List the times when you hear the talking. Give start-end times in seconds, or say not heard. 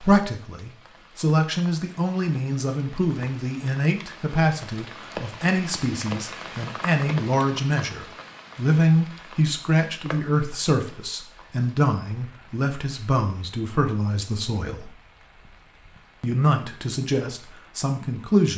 0.0-14.9, 16.2-18.5.